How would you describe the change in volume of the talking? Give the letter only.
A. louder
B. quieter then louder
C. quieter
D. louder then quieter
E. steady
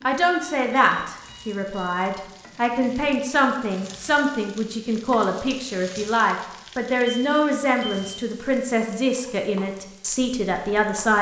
E.